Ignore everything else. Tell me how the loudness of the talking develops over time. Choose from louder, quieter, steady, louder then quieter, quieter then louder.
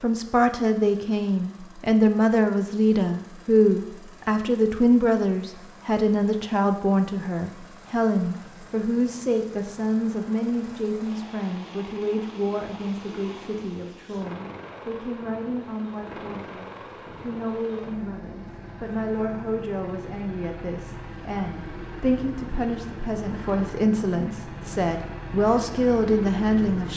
quieter then louder.